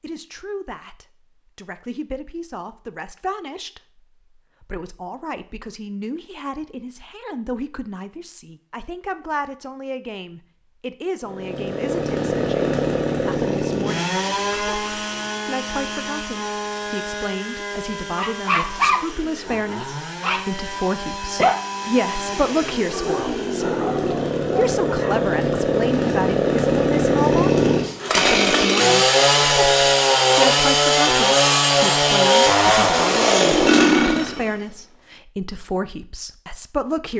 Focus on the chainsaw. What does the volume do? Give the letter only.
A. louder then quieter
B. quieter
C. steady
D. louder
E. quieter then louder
E.